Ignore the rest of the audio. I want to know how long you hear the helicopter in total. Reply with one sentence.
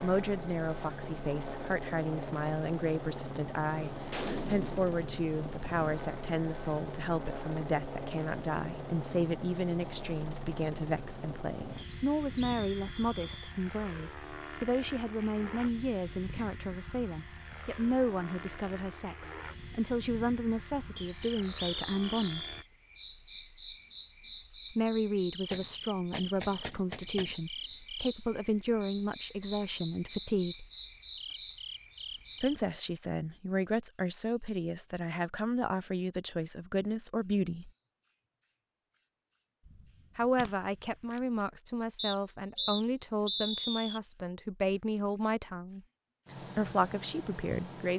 The helicopter can be heard for 23 seconds in total.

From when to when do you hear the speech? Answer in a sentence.
You can hear the speech from 0.0 to 22.4 s, from 24.7 to 30.6 s, from 32.4 to 37.7 s, from 40.1 to 45.8 s and from 46.5 to 47.9 s.